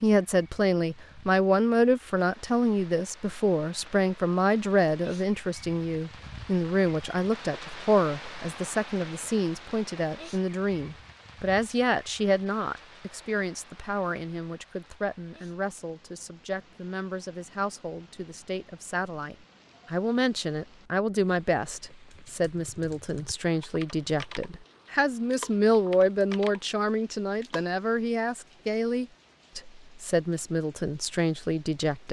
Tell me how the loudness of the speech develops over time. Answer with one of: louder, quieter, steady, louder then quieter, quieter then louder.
quieter then louder.